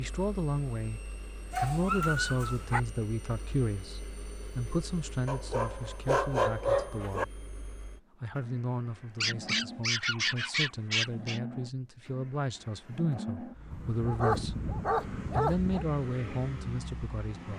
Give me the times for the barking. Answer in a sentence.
The barking can be heard from 1.5 to 2.8 s, from 5.2 to 7.2 s, from 9.2 to 11.4 s and from 13.7 to 15.8 s.